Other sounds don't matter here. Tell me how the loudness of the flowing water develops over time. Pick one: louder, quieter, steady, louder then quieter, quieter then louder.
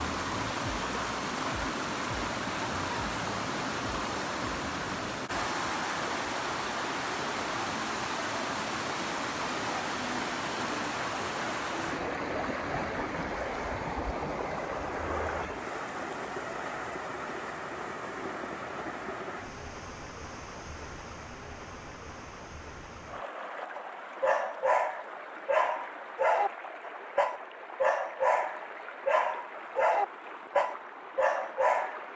quieter.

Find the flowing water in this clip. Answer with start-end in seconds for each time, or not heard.
0.0-32.1.